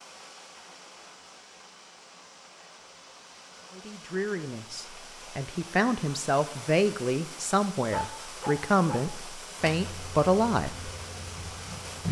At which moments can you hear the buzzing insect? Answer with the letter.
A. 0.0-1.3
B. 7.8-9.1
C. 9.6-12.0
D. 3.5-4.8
C.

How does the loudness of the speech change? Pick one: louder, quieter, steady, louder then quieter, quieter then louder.
louder.